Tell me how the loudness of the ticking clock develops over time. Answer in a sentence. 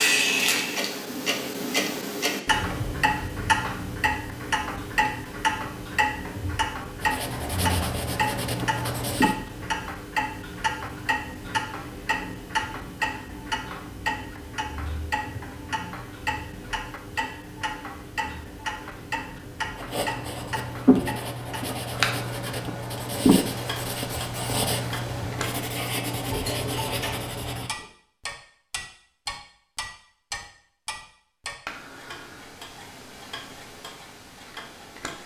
The volume of the ticking clock goes down.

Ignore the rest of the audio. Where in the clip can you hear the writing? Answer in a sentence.
The writing can be heard from 7.0 to 9.3 s and from 19.8 to 27.9 s.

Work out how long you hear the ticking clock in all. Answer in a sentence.
The ticking clock can be heard for 35 seconds in total.